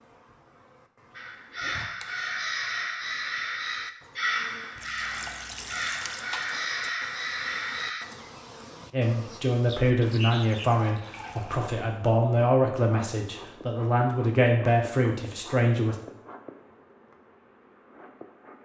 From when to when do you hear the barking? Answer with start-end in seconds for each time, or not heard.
not heard.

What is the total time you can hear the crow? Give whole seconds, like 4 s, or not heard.
7 s.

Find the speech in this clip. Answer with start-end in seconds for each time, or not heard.
8.9-15.9.